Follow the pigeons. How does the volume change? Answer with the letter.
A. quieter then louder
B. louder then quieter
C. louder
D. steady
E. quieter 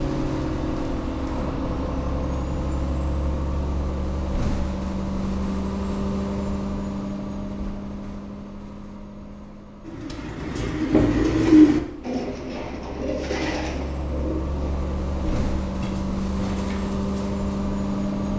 E.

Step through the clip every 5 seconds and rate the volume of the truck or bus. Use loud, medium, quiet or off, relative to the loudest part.
loud, loud, medium, loud.